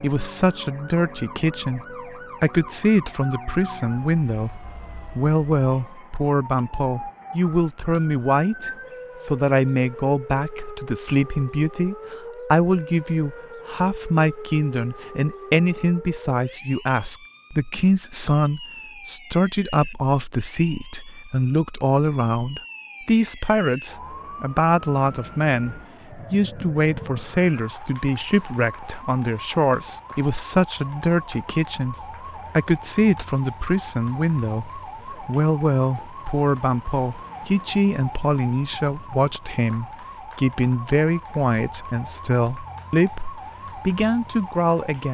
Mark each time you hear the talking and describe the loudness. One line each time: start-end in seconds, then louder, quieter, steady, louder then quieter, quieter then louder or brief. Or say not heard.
0.0-45.0 steady.